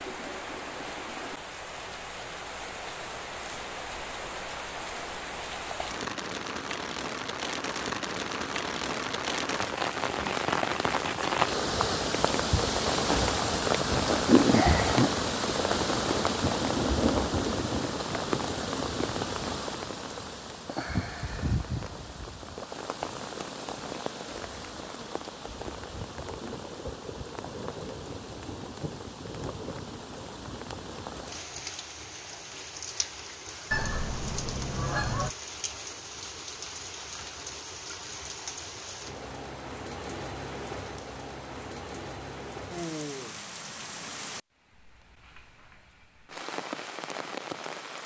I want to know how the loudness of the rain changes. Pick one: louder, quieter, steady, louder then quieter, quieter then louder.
louder then quieter.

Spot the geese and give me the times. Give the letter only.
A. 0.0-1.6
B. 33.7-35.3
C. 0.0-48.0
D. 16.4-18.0
B.